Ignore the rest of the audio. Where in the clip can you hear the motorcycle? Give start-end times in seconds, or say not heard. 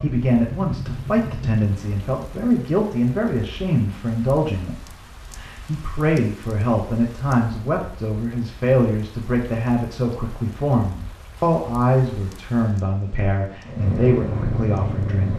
0.0-1.6, 13.7-15.3.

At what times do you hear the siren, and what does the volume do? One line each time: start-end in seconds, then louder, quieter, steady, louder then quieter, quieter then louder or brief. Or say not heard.
not heard.